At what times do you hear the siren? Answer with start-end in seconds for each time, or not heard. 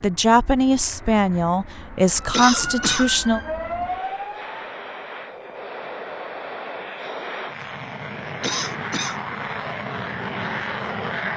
2.1-4.5.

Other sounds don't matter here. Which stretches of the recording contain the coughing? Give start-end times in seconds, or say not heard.
2.3-3.1, 8.4-9.2.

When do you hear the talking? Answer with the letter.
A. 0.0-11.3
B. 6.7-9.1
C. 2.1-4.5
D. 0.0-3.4
D.